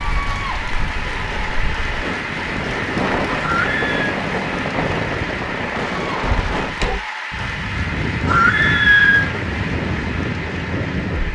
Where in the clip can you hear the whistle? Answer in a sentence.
You can't hear the whistle here.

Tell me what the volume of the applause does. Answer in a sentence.
The loudness of the applause stays about the same.